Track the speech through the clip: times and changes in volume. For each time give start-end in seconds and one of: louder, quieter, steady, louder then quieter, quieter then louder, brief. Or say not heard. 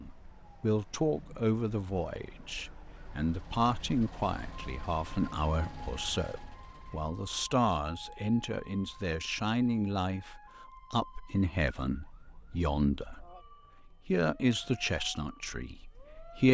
0.0-16.4 steady.